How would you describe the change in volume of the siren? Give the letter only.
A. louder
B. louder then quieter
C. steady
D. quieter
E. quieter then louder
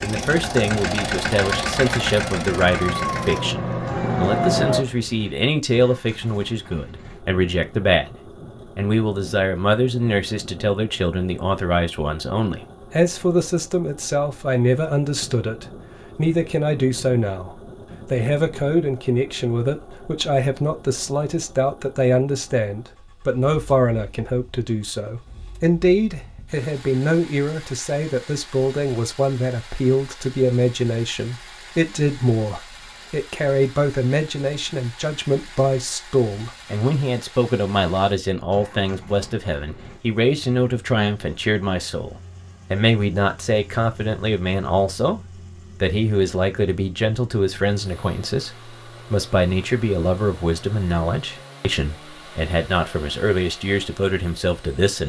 A.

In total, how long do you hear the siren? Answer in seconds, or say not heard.
5 s.